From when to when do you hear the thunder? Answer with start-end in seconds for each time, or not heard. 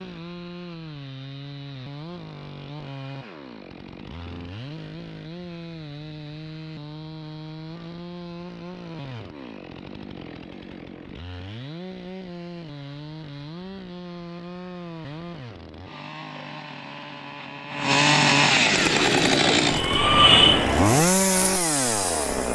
not heard.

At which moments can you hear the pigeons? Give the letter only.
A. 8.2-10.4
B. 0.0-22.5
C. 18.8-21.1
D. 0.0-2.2
C.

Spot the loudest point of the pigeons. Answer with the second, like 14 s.
20 s.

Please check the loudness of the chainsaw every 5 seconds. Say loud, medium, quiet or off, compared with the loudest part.
quiet, quiet, quiet, loud, loud.